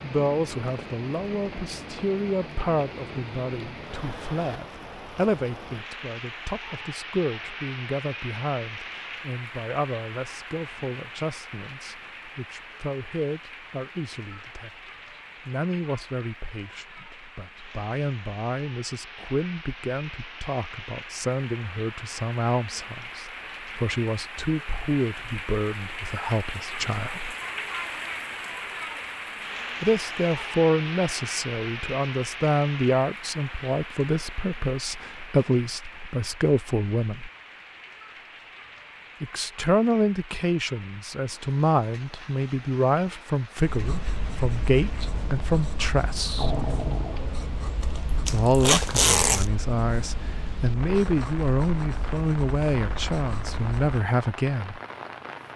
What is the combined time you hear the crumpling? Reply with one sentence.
The crumpling can be heard for 2 seconds in total.